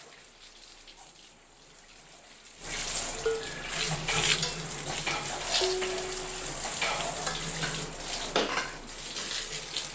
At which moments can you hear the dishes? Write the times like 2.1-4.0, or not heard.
3.1-9.3.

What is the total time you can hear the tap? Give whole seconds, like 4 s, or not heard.
10 s.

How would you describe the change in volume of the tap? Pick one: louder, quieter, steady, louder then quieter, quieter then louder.
louder then quieter.